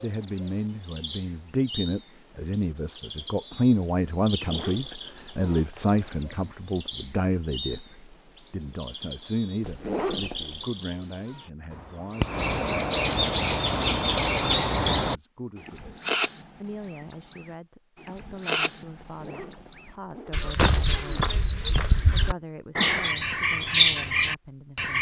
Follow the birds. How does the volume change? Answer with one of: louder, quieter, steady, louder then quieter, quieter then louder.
louder.